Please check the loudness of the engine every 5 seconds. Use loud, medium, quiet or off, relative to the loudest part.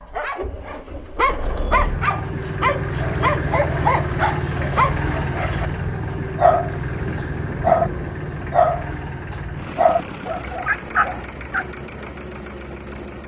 loud, loud, medium.